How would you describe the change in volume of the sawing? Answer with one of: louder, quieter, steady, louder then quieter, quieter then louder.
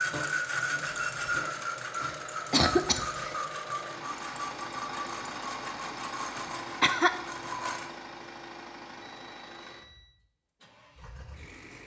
quieter.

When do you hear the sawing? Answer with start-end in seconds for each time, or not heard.
0.0-7.9.